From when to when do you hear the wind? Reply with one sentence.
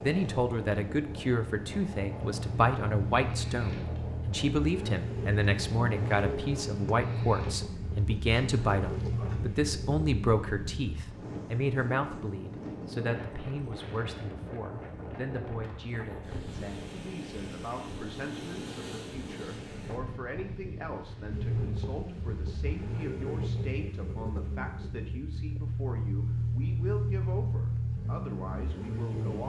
You can hear the wind from 0.0 to 23.1 s.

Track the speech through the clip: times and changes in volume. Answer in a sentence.
The speech can be heard from 0.0 to 29.4 s, getting quieter.